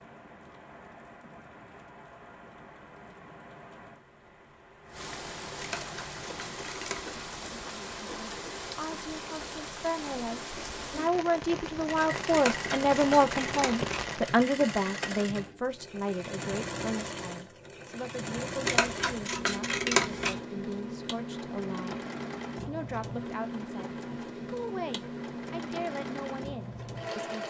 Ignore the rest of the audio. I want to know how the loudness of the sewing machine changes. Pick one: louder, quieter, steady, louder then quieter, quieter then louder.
steady.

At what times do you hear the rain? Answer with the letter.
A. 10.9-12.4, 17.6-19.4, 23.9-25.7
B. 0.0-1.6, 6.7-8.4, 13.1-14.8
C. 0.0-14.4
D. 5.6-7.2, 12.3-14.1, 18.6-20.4
C.